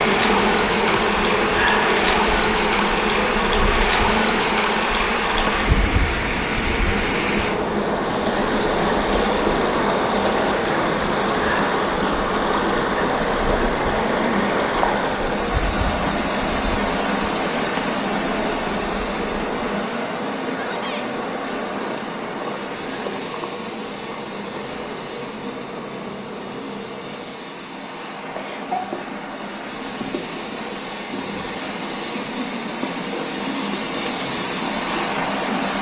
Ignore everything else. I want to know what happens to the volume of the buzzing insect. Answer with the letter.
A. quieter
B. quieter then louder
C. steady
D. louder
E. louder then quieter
A.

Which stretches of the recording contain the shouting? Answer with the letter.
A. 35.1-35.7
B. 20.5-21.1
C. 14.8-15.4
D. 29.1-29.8
B.